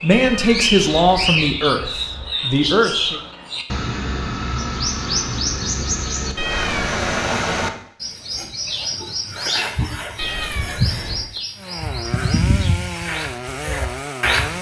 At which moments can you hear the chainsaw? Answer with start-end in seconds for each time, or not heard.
11.6-14.5.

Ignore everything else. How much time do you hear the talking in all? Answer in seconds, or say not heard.
3 s.